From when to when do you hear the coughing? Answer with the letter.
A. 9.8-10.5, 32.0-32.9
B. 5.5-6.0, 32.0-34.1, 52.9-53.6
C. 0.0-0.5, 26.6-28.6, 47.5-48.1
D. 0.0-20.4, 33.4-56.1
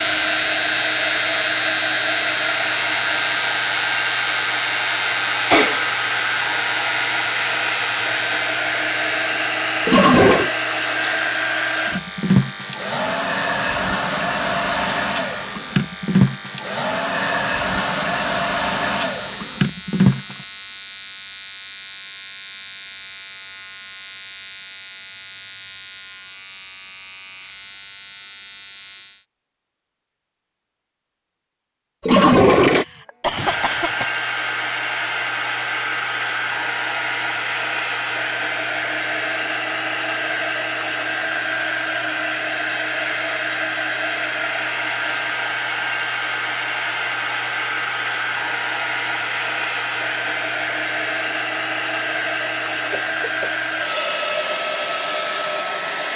B.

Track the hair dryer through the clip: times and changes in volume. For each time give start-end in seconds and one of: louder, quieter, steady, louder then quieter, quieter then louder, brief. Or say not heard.
0.0-20.4 steady
33.4-56.1 steady.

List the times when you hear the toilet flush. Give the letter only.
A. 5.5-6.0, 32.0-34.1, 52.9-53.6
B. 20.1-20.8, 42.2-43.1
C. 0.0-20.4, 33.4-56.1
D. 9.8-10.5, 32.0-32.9
D.